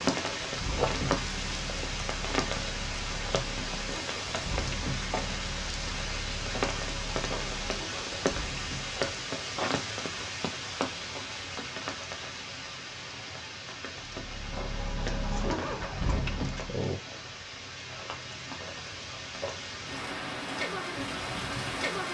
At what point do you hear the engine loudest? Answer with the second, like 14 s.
16 s.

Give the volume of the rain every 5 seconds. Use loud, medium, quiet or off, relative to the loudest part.
loud, loud, medium, medium, loud.